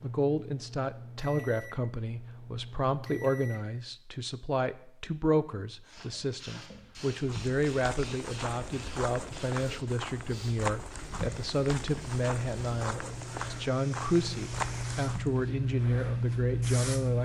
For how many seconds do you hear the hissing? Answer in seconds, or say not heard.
11 s.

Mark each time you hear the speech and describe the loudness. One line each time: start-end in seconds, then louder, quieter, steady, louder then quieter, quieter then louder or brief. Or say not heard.
0.0-17.2 steady.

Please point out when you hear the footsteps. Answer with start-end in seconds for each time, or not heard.
7.2-15.4.